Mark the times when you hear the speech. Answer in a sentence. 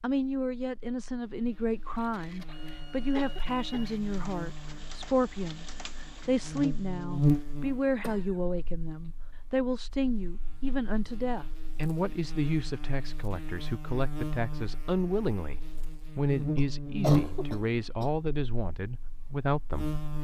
You can hear the speech from 0.0 to 19.9 s.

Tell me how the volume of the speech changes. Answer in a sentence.
The loudness of the speech stays about the same.